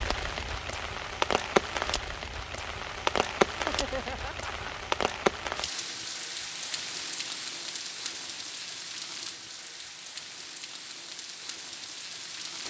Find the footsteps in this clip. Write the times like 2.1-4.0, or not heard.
not heard.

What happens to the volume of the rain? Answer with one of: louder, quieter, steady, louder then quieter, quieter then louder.
quieter.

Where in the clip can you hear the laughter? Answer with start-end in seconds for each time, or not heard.
3.6-4.7.